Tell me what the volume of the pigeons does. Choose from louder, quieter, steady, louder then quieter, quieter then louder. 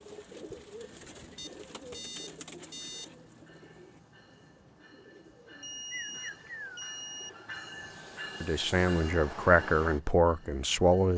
quieter then louder.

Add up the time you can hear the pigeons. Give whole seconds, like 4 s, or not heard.
7 s.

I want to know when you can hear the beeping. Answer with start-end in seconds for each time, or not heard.
1.4-3.1, 5.6-7.3.